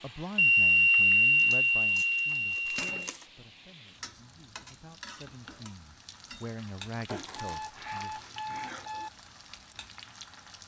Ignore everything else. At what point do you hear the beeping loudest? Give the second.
1 s.